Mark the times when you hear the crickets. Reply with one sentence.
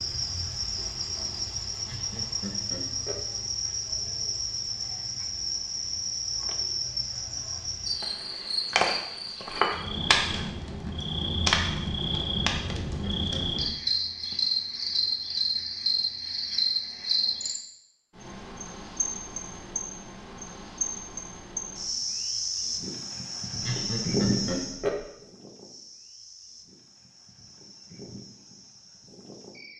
The crickets can be heard from 0.0 to 29.7 s.